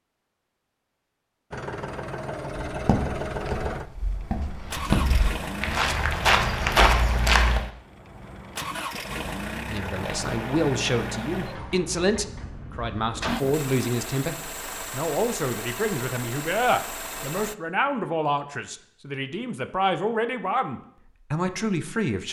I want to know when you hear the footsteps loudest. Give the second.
7 s.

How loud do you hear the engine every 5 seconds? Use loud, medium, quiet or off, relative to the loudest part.
loud, loud, loud, loud, off.